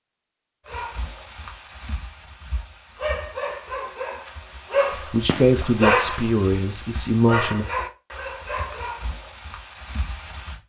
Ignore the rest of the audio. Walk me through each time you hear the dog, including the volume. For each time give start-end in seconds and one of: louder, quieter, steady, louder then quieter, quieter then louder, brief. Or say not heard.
0.7-10.6 louder then quieter.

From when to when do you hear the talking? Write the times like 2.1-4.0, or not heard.
5.1-7.7.